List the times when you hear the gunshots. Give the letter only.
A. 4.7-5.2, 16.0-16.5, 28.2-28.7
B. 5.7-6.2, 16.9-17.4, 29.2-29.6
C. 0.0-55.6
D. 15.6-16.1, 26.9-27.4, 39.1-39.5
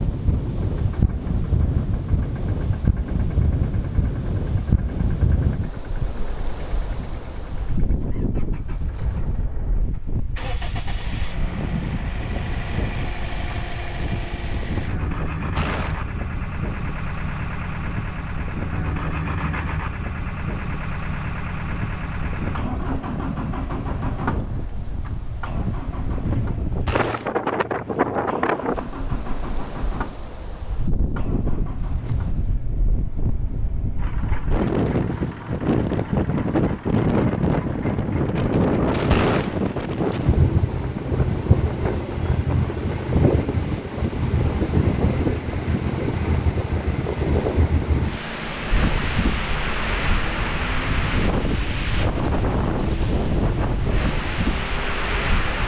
D.